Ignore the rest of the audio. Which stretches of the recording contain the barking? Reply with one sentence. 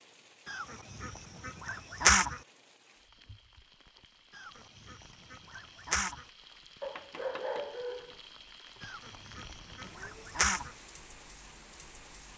The barking can be heard from 6.8 to 8.2 s.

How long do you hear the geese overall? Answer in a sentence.
The geese can be heard for 6 seconds in total.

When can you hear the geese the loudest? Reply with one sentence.
The loudest moment of the geese is at 2 seconds.